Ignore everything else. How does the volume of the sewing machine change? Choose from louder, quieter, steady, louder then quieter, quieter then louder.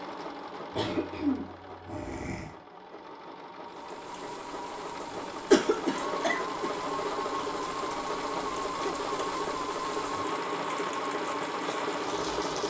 louder.